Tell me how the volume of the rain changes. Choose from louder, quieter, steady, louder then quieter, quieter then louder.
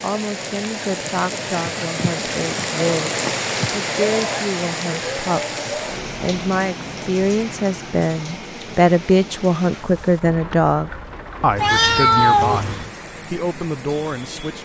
quieter.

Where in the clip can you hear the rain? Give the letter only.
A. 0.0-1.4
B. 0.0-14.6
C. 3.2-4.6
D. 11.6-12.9
B.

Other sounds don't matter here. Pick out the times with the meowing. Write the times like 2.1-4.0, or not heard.
11.6-12.9.